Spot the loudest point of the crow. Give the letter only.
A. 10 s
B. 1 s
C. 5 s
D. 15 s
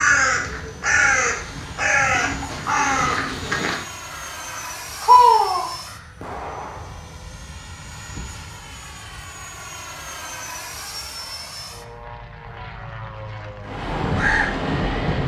C.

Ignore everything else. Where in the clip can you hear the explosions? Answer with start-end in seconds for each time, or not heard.
6.2-7.3.